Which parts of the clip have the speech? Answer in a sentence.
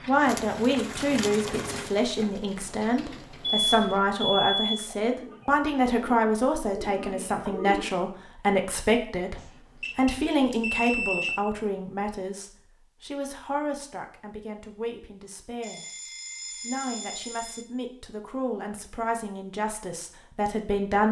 The speech can be heard from 0.1 to 21.0 s.